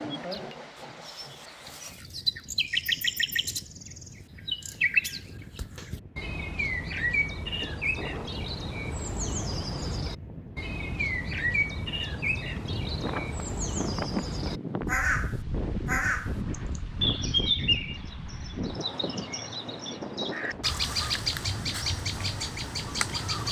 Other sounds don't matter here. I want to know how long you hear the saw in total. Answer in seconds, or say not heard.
2 s.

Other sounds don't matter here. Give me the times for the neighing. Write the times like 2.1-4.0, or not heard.
not heard.